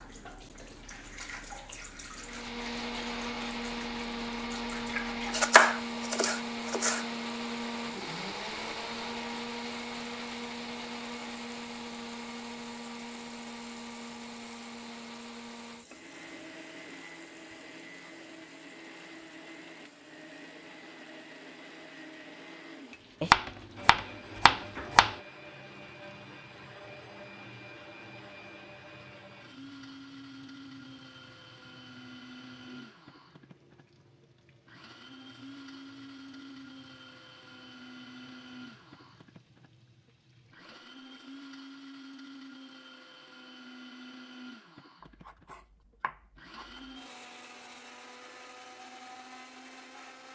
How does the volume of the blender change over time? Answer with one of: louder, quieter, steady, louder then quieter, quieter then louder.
quieter.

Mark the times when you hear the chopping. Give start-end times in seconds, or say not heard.
5.3-7.0, 23.2-25.1, 45.0-46.8.